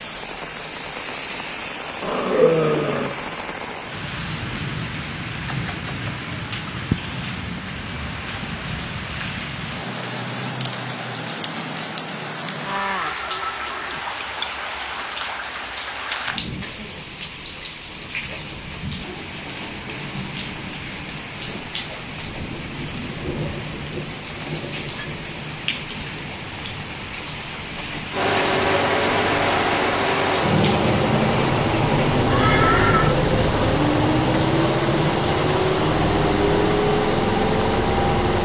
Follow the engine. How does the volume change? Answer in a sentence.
The loudness of the engine stays about the same.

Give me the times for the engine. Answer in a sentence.
The engine can be heard from 28.1 to 38.4 s.